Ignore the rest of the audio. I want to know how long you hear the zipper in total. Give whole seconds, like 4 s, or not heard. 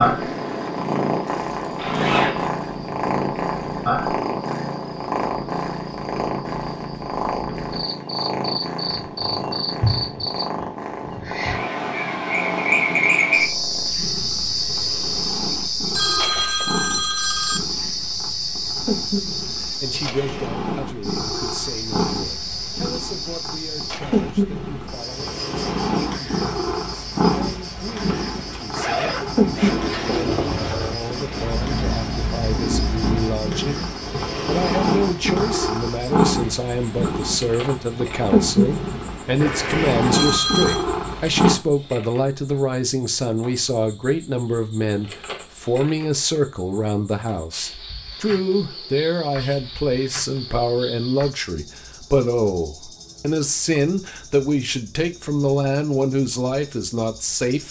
3 s.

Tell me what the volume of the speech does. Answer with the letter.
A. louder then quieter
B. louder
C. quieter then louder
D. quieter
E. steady
B.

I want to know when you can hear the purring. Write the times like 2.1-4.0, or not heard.
0.0-41.5.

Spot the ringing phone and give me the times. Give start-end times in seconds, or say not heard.
15.9-17.6, 40.1-40.9.